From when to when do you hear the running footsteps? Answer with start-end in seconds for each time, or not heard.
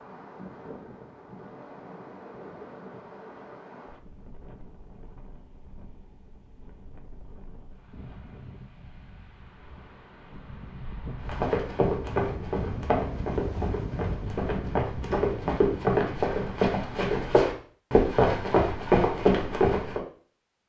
11.2-20.0.